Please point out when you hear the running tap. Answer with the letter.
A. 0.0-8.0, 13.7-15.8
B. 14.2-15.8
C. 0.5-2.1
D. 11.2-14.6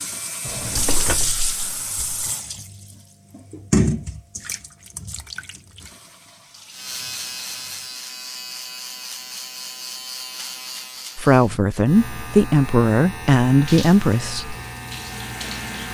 A.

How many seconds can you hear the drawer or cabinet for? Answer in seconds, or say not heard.
2 s.